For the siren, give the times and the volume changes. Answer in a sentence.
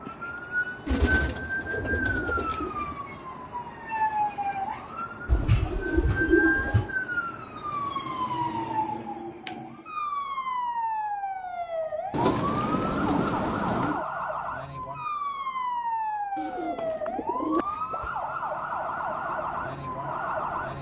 You can hear the siren from 0.0 to 20.7 s, at a steady volume.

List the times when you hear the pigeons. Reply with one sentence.
You can hear the pigeons from 0.8 to 3.0 s, from 5.2 to 6.9 s, from 12.1 to 14.1 s and from 16.4 to 18.1 s.